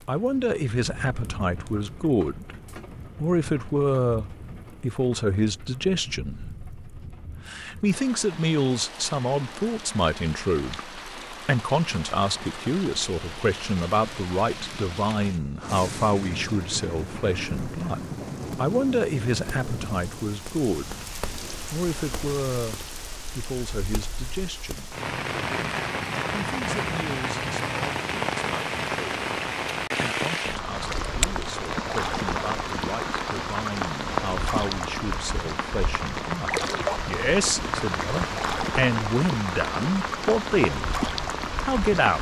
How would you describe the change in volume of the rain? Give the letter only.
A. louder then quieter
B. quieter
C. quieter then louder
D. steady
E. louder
E.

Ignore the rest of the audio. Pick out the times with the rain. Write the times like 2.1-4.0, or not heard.
0.0-42.1.